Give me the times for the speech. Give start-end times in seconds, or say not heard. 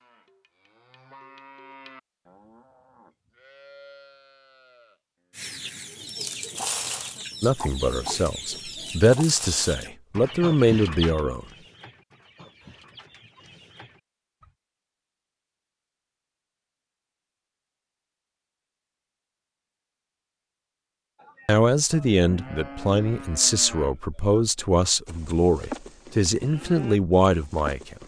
7.4-11.4, 21.4-27.9.